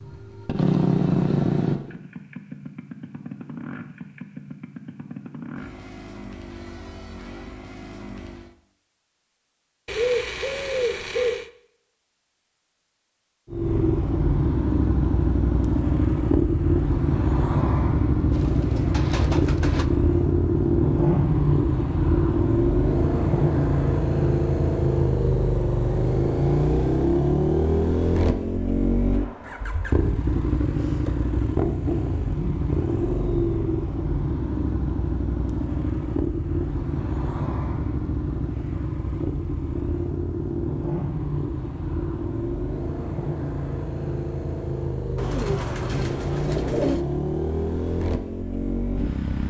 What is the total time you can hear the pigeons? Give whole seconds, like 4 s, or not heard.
5 s.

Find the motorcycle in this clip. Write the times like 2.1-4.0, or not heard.
0.0-8.6, 13.5-49.4.